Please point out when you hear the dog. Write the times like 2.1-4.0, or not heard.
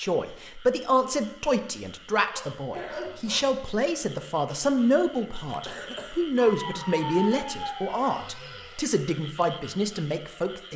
2.3-3.4, 6.4-8.8.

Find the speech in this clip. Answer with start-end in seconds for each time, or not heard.
0.0-10.7.